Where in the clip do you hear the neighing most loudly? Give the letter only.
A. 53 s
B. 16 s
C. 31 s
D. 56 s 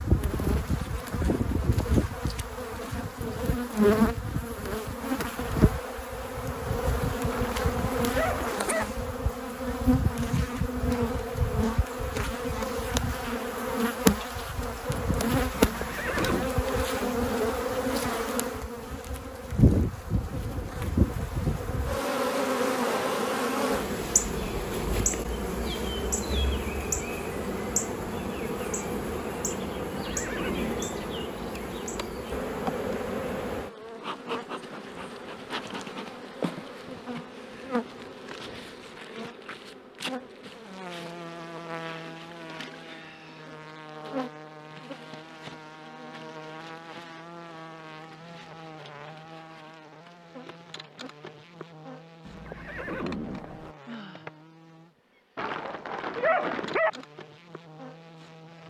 B.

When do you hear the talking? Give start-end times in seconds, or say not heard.
not heard.